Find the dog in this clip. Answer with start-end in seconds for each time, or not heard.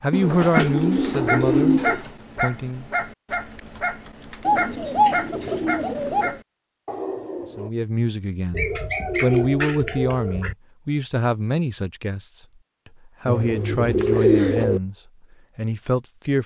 0.5-7.7.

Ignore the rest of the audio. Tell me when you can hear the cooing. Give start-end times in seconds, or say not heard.
0.1-2.1, 4.5-6.4, 8.5-10.6, 13.2-14.8.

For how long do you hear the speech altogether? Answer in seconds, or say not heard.
11 s.